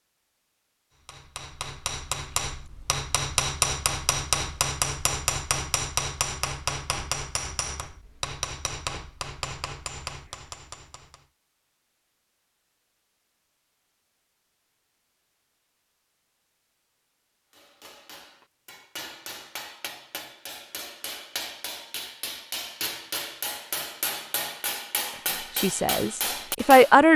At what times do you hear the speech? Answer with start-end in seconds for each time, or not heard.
25.6-27.1.